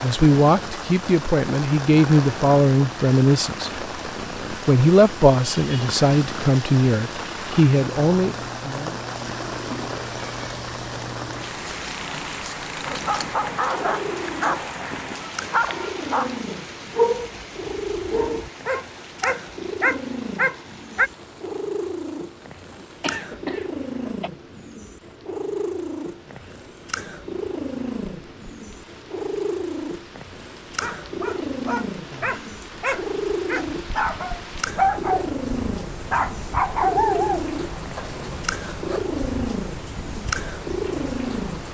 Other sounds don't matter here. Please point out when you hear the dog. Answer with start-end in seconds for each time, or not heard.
12.8-21.1, 30.8-35.3, 36.1-39.0.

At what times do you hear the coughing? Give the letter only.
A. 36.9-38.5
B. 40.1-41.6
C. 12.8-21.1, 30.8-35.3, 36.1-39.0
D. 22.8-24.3
D.